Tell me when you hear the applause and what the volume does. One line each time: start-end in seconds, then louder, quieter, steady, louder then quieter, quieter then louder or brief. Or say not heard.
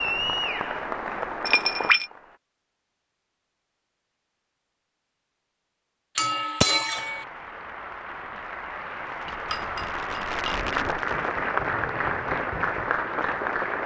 0.0-2.4 brief
7.0-13.8 louder.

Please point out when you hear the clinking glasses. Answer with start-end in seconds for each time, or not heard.
1.4-2.1, 6.2-7.2, 9.2-11.1.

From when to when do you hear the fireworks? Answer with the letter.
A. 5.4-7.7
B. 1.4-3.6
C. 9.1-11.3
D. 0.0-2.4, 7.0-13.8
C.